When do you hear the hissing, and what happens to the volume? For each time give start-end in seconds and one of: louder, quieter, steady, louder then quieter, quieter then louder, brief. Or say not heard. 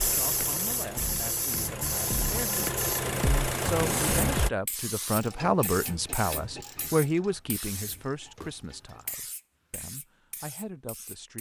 0.0-11.3 quieter.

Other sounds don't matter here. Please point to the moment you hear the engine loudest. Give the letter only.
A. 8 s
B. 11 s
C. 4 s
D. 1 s
C.